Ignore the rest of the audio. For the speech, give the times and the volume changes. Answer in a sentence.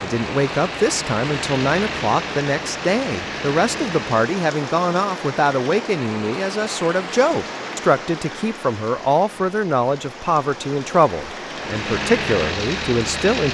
The speech can be heard from 0.0 to 13.5 s, at a steady volume.